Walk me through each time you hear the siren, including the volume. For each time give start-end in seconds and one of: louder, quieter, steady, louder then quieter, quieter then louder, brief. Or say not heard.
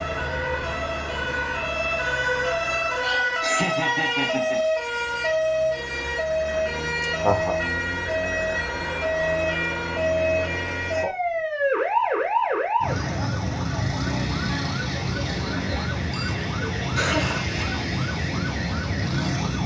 0.0-19.6 steady.